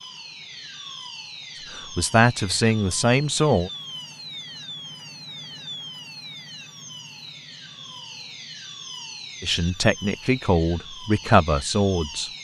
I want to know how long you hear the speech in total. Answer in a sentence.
The speech can be heard for 5 seconds in total.